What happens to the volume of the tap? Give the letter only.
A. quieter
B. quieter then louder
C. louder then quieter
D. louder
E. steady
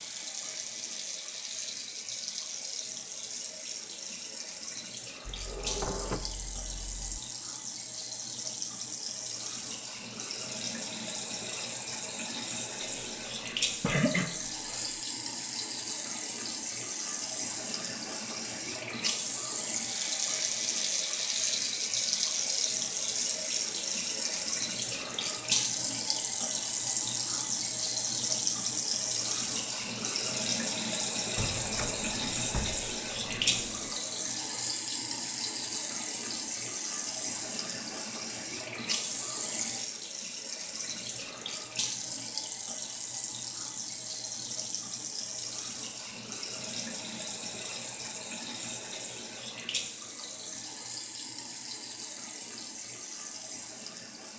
C.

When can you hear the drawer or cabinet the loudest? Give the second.
6 s.